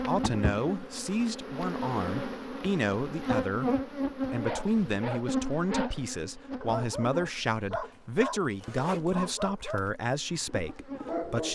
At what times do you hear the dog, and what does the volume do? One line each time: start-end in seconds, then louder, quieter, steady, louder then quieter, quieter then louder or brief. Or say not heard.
4.3-11.5 quieter.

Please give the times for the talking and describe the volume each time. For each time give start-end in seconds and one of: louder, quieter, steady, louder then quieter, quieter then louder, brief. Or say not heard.
0.0-11.5 steady.